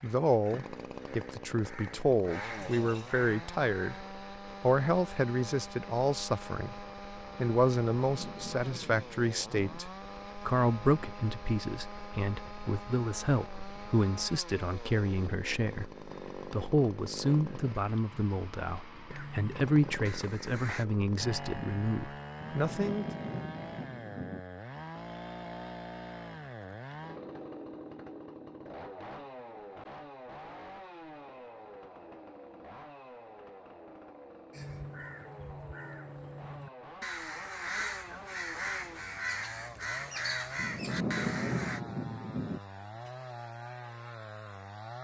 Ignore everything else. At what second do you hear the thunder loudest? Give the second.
41 s.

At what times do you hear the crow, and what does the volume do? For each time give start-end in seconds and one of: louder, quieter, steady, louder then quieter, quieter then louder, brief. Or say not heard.
0.0-4.0 louder
19.1-20.9 brief
34.5-41.8 louder.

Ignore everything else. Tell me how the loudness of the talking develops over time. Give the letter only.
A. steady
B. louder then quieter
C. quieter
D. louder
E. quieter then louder
A.